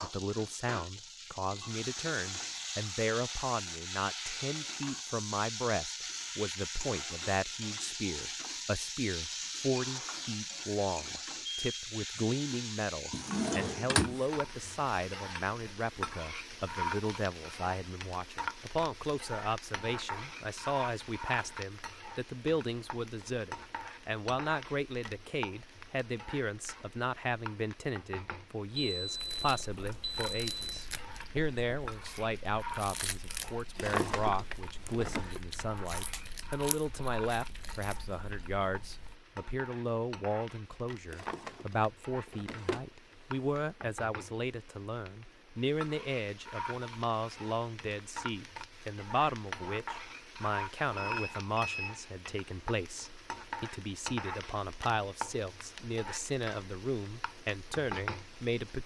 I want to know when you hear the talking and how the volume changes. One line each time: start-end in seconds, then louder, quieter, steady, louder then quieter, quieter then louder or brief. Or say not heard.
0.0-58.8 steady.